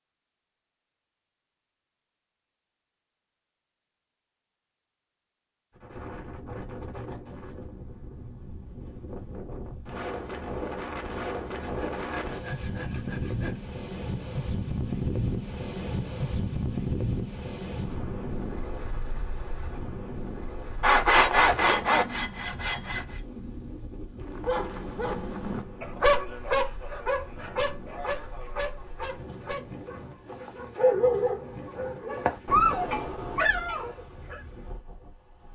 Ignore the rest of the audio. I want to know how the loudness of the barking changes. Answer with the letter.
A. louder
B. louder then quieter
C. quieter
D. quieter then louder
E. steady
D.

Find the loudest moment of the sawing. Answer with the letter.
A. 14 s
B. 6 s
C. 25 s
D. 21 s
D.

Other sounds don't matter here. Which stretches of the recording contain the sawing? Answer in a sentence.
You can hear the sawing from 11.6 to 13.6 s and from 20.8 to 23.2 s.